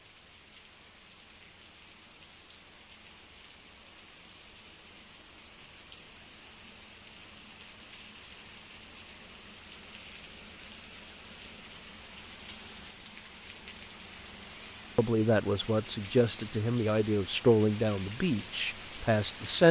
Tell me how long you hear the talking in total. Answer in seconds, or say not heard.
5 s.